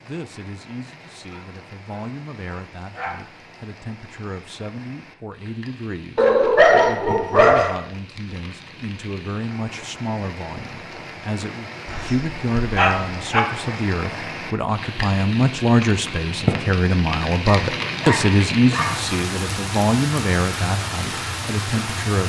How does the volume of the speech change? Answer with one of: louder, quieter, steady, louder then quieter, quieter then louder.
louder.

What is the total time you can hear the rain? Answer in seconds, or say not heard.
22 s.